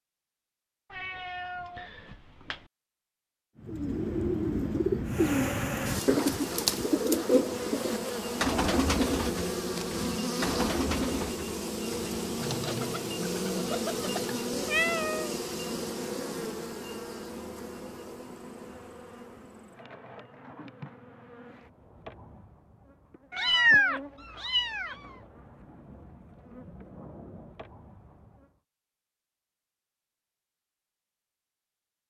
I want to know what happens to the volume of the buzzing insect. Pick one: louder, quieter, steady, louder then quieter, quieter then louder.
quieter.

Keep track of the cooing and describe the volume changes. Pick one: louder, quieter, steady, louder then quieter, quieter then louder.
quieter.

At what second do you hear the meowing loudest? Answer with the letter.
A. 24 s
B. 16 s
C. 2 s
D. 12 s
A.